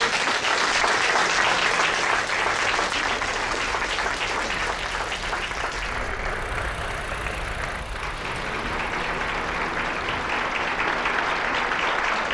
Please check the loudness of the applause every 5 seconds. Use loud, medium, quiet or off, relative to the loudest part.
loud, medium, loud.